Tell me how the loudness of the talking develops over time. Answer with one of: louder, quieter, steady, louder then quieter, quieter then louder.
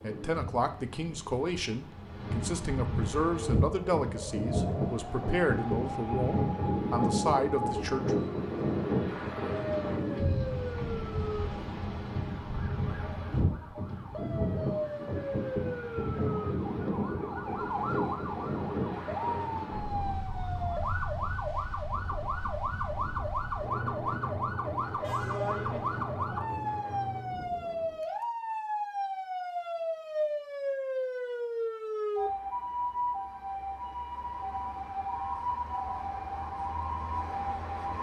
steady.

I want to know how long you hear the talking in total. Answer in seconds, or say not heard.
8 s.